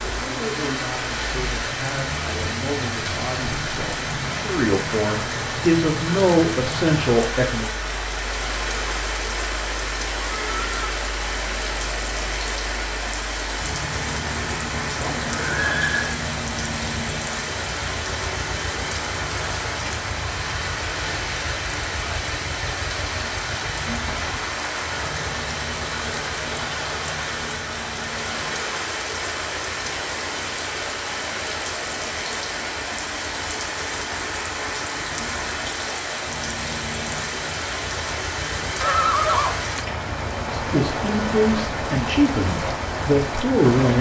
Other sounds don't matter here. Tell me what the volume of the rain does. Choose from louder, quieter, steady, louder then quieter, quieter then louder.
steady.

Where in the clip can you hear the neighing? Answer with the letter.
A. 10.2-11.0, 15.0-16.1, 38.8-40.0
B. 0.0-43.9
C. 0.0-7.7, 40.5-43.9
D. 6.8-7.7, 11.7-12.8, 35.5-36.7
A.